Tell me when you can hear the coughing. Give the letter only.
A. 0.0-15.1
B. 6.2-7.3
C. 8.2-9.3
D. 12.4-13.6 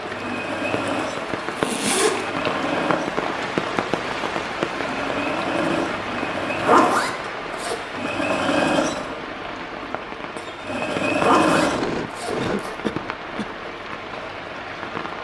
D.